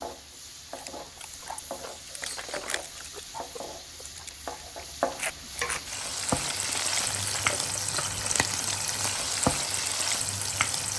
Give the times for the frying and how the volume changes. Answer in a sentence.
The frying can be heard from 0.0 to 10.9 s, getting louder.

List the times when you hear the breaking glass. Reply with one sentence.
The breaking glass can be heard from 2.2 to 2.9 s and from 7.2 to 7.8 s.